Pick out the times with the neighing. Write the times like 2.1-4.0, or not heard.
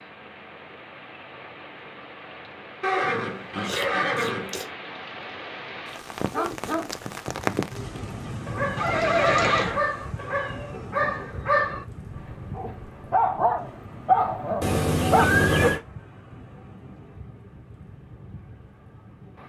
2.8-4.7, 8.8-9.8, 14.6-15.8.